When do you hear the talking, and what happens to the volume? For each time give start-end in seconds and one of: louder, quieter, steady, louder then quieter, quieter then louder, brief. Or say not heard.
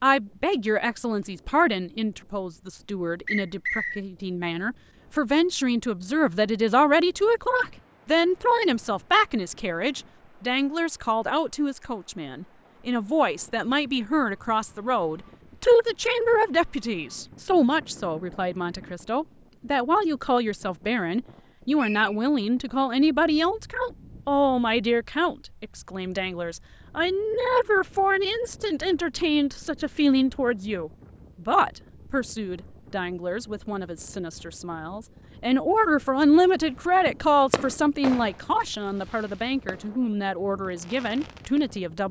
0.0-42.0 steady.